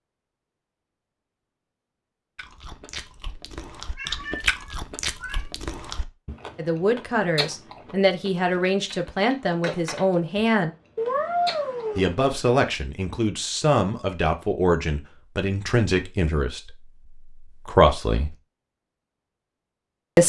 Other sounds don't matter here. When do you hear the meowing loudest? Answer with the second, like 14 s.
11 s.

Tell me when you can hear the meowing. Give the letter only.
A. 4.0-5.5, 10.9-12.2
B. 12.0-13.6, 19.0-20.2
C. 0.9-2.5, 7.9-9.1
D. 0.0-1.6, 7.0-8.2
A.